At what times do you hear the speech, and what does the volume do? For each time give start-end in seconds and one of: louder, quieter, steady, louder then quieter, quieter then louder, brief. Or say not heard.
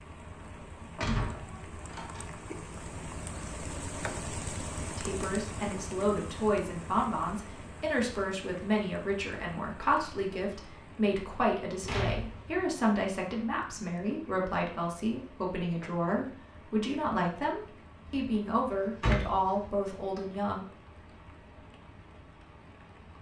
5.0-20.6 steady.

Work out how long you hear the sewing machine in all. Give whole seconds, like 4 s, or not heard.
not heard.